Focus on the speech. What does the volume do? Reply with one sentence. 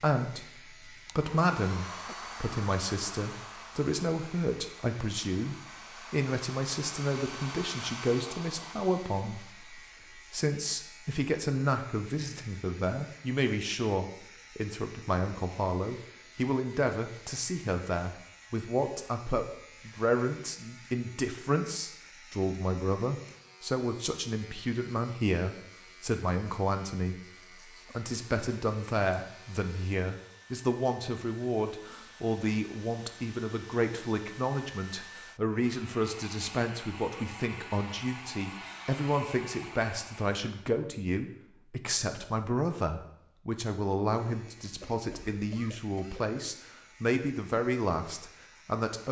The loudness of the speech stays about the same.